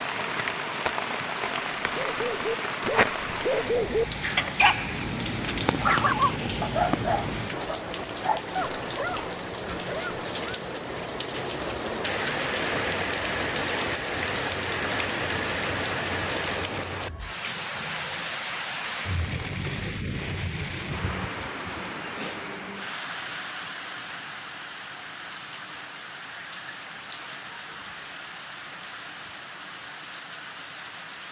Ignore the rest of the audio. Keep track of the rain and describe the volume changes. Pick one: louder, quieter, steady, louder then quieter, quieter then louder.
quieter.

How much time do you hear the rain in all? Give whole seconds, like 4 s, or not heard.
31 s.